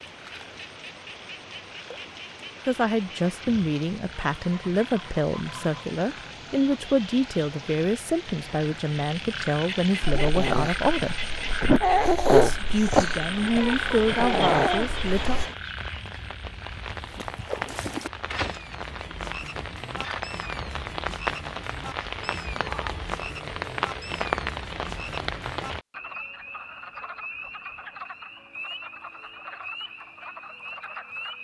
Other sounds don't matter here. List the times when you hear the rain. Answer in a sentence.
The rain can be heard from 0.0 to 25.9 s.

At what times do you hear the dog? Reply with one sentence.
The dog can be heard from 10.0 to 15.4 s.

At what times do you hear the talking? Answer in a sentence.
You can hear the talking from 2.6 to 11.2 s and from 12.3 to 15.4 s.